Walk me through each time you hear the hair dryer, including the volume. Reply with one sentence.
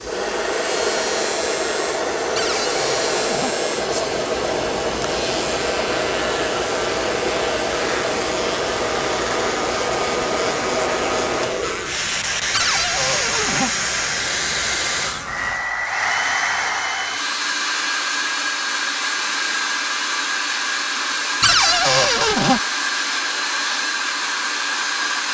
The hair dryer can be heard from 0.0 to 25.3 s, at a steady volume.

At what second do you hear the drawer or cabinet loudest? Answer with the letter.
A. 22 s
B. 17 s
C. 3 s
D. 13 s
A.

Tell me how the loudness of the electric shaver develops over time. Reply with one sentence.
The volume of the electric shaver stays about the same.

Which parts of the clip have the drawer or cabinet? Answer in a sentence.
You can hear the drawer or cabinet from 2.4 to 3.5 s, from 12.5 to 13.7 s and from 21.4 to 22.6 s.